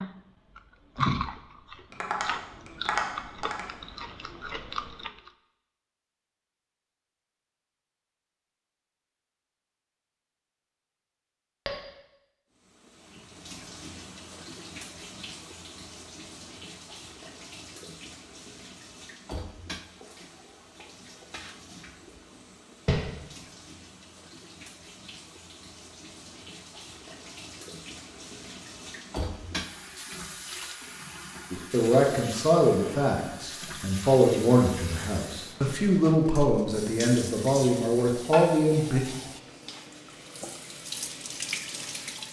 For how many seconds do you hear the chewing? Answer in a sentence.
The chewing can be heard for 5 seconds in total.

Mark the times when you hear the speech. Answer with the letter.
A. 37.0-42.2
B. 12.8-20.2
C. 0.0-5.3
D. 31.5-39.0
D.